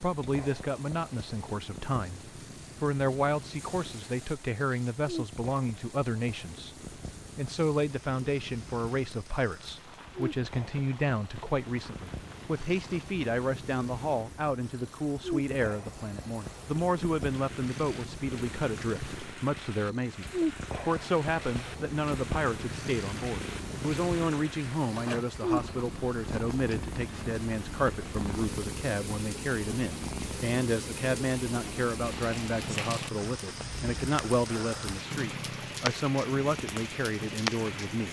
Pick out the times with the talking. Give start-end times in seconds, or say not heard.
0.0-6.8, 7.3-38.0.